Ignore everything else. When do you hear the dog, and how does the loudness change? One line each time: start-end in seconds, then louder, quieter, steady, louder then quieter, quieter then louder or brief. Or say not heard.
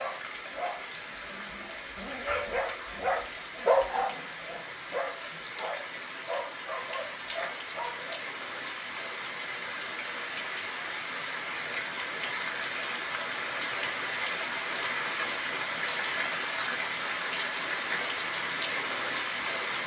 0.0-8.2 louder then quieter.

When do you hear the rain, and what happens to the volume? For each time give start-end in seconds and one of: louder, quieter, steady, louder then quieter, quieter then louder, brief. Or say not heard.
0.0-19.8 louder.